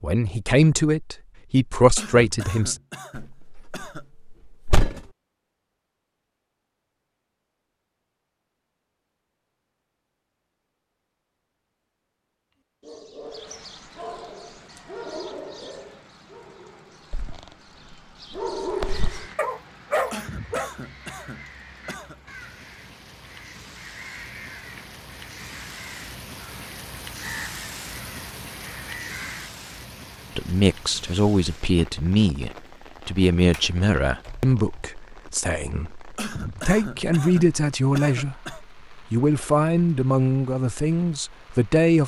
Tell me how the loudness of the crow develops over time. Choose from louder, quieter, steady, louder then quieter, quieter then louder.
louder.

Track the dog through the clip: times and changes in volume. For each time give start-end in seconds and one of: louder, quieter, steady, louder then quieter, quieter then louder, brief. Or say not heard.
12.8-20.7 quieter then louder.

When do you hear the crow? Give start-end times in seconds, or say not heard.
18.8-29.5.